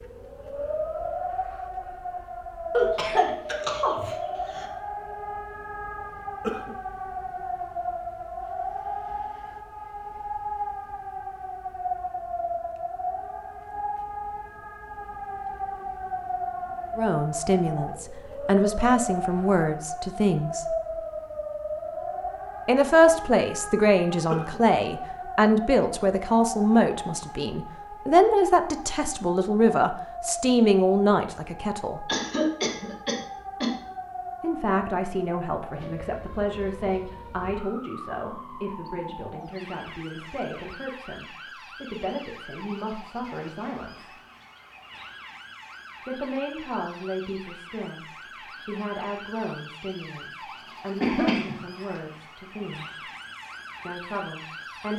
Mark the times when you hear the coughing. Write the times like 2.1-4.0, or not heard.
2.7-4.7, 32.0-33.7, 51.0-51.5.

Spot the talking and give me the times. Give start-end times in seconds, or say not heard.
16.9-20.8, 22.6-32.0, 34.4-44.1, 46.0-53.1, 53.9-54.9.